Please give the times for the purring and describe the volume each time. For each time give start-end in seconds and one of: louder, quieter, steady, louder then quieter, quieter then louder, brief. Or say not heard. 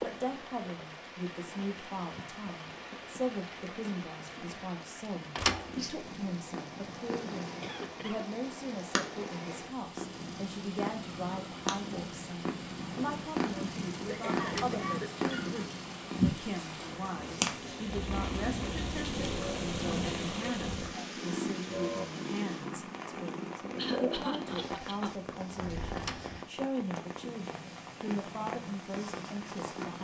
5.5-29.9 louder then quieter.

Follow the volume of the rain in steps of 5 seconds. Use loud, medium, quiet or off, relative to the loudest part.
loud, loud, medium, loud, loud, loud.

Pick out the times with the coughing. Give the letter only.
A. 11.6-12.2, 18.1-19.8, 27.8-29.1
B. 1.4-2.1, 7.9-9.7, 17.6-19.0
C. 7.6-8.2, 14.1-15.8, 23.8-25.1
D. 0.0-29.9
C.